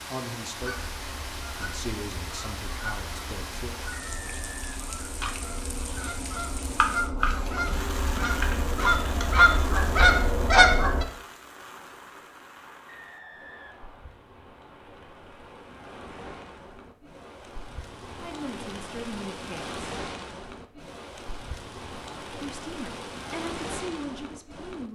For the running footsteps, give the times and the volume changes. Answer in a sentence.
The running footsteps can't be heard in this clip.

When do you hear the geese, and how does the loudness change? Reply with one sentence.
The geese can be heard from 0.6 to 11.1 s, getting louder.